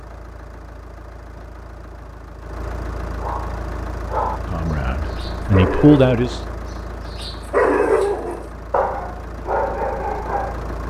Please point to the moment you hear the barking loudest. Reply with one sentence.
The loudest moment of the barking is at 8 seconds.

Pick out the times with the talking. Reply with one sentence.
The talking can be heard from 4.5 to 6.4 s.